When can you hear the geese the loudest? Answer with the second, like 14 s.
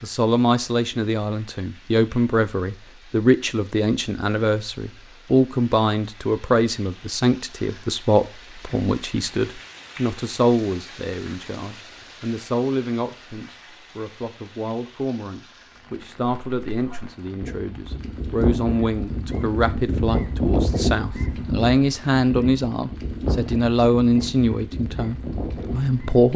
21 s.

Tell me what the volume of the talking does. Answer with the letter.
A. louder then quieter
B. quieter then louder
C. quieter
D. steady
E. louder
B.